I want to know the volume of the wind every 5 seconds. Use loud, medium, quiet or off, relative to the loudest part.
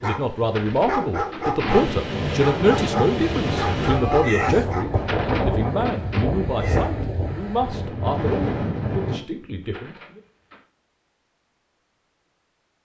loud, loud, off.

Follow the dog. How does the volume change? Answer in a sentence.
The volume of the dog stays about the same.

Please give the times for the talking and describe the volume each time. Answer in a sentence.
The talking can be heard from 0.0 to 10.2 s, getting quieter.